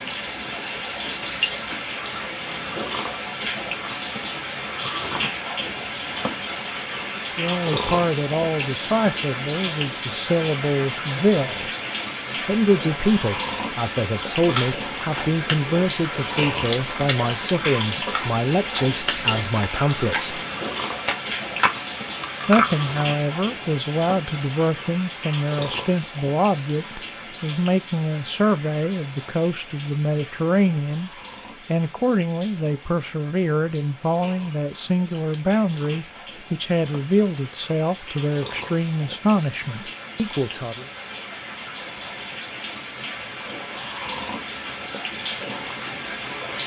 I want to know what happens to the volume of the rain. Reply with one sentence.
The loudness of the rain goes down, then up.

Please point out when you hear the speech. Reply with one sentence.
The speech can be heard from 7.2 to 11.7 s, from 12.4 to 20.4 s and from 22.4 to 40.9 s.